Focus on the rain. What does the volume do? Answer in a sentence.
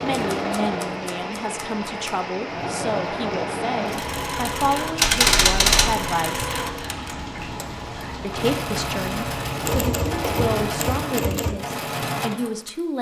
The loudness of the rain stays about the same.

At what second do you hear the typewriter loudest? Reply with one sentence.
The volume of the typewriter peaks at 5 seconds.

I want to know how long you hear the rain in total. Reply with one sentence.
You can hear the rain for 11 seconds altogether.